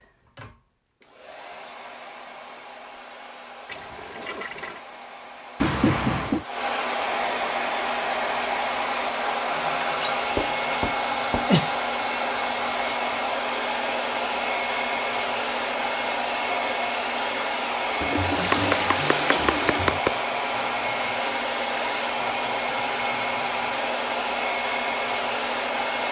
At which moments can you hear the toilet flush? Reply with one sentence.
The toilet flush can be heard from 3.6 to 4.8 s, from 9.5 to 10.9 s and from 18.0 to 20.0 s.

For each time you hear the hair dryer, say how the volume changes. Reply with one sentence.
The hair dryer can be heard from 0.0 to 26.0 s, getting louder.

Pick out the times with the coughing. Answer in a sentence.
The coughing can't be heard in this clip.